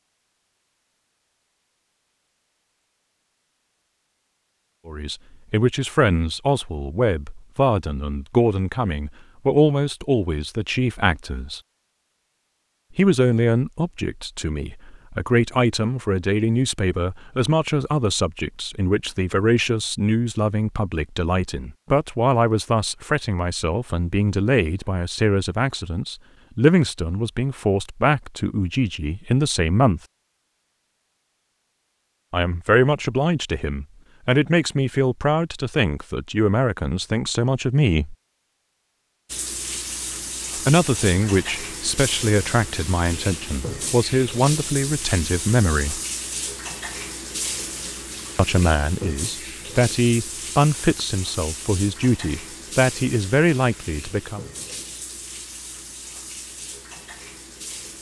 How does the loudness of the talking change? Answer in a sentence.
The loudness of the talking stays about the same.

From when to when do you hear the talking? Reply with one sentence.
The talking can be heard from 4.8 to 11.6 s, from 12.9 to 30.0 s, from 32.3 to 38.1 s, from 40.5 to 46.0 s and from 48.4 to 54.5 s.